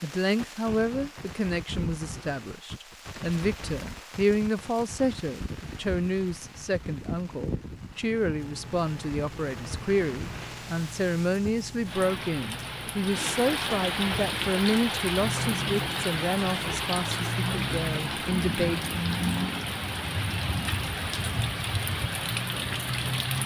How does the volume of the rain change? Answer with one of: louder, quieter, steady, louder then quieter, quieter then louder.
louder.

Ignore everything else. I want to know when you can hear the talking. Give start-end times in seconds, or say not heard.
0.0-18.9.